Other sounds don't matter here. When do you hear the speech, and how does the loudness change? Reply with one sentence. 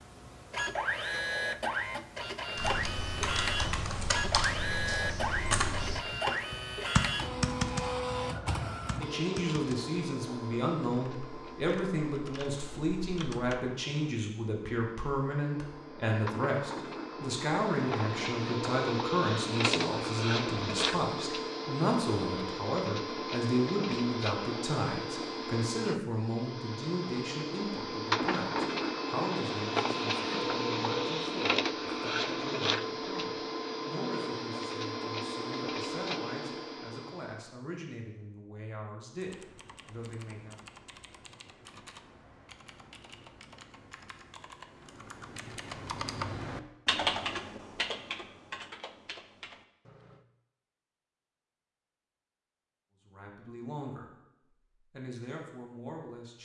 The speech can be heard from 8.9 to 40.8 s, getting quieter; briefly from 53.0 to 54.1 s; and briefly from 54.8 to 56.3 s.